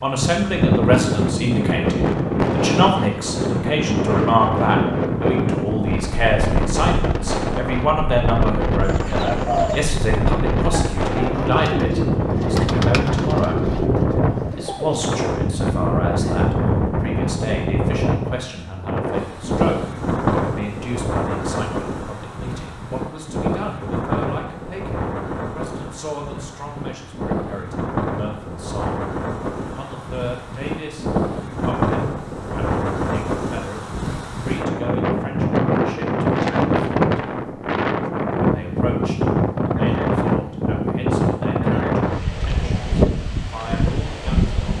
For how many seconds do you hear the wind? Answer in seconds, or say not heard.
45 s.